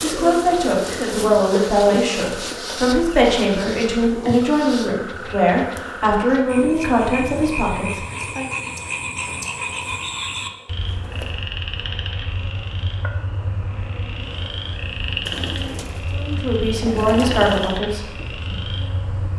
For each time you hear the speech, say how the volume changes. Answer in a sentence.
The speech can be heard from 0.0 to 8.5 s, at a steady volume; and briefly from 16.1 to 18.1 s.